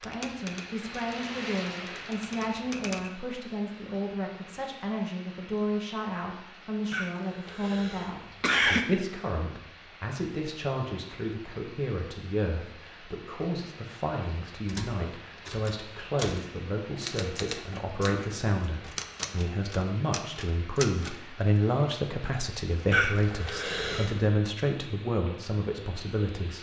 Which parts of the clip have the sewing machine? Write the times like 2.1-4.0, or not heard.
not heard.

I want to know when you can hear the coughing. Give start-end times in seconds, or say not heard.
6.9-8.8, 22.9-24.4.